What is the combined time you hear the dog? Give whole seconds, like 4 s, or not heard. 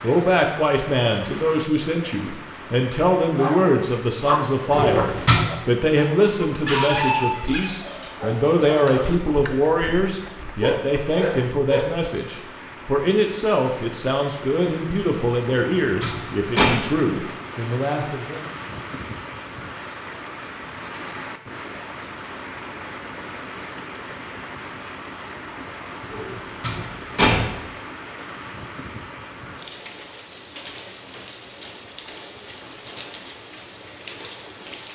9 s.